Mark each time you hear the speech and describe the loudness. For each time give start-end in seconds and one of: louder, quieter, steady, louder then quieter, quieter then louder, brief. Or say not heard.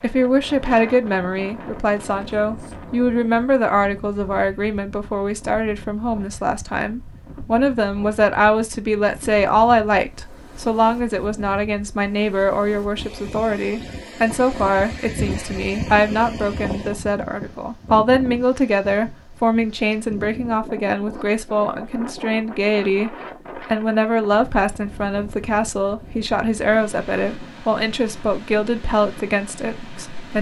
0.0-30.3 steady.